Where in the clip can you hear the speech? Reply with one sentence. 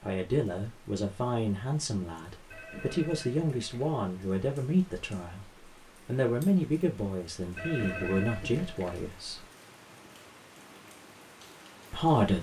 You can hear the speech from 0.0 to 5.5 s, from 6.0 to 9.4 s and from 11.9 to 12.3 s.